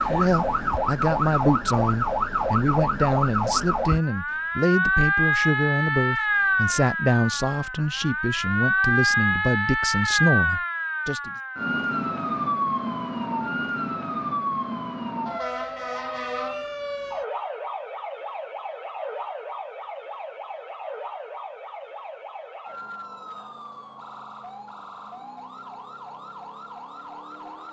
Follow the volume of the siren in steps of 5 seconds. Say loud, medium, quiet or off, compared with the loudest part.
loud, loud, loud, medium, quiet, quiet.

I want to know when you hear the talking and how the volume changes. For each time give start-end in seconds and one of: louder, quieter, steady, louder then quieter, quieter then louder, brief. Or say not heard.
0.0-11.3 steady.